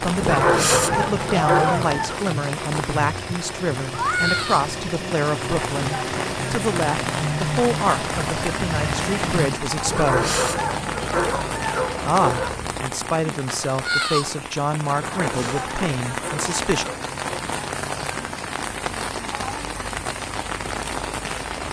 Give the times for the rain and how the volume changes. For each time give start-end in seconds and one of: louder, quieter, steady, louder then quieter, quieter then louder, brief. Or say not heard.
0.0-21.6 steady.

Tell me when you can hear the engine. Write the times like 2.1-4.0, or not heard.
0.0-9.6.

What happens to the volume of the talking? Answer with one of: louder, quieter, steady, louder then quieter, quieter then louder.
steady.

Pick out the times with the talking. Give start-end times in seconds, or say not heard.
0.0-10.3, 12.0-16.9.